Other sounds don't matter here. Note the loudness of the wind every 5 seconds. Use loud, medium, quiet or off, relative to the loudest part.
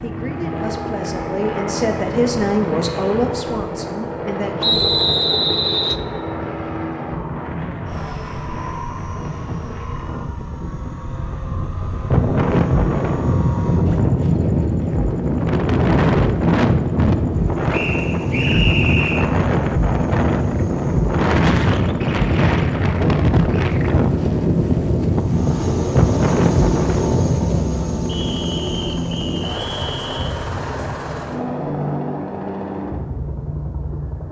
quiet, quiet, loud, loud, loud, loud, off.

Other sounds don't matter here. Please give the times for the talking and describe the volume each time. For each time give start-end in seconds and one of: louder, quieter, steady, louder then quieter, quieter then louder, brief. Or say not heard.
0.0-4.9 louder then quieter.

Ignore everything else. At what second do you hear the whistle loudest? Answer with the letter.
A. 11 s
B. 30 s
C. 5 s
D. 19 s
C.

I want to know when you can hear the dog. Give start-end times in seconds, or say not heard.
not heard.